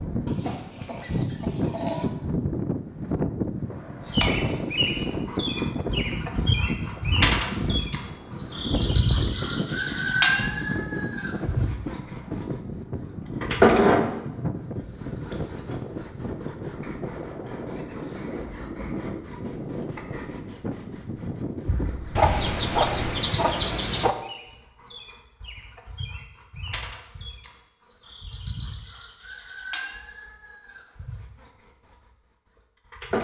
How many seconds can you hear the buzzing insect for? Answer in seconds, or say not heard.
29 s.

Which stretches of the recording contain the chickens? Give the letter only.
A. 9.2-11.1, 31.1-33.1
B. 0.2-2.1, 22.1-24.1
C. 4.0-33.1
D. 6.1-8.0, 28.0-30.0
B.